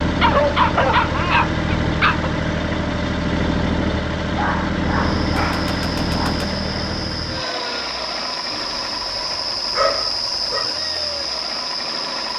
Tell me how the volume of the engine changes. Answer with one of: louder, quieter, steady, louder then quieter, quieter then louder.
quieter.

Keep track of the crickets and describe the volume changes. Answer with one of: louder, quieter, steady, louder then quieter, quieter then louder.
louder.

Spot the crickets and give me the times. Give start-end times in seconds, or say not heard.
5.0-12.3.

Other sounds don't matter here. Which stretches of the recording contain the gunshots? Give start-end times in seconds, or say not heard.
5.3-7.1.